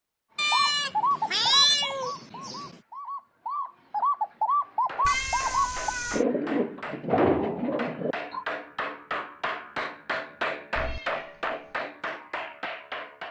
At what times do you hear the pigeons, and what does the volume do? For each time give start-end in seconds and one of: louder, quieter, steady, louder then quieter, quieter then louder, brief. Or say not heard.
0.5-8.4 quieter then louder.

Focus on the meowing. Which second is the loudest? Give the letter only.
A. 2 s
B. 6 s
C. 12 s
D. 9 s
A.